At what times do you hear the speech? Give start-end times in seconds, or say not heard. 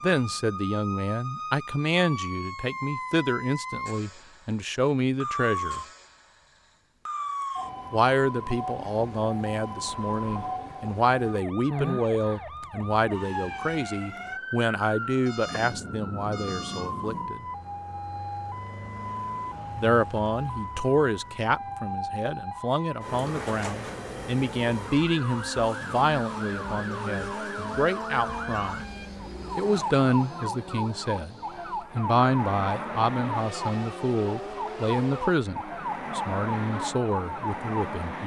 0.0-5.8, 7.9-17.4, 19.8-28.9, 29.6-31.4, 31.9-38.2.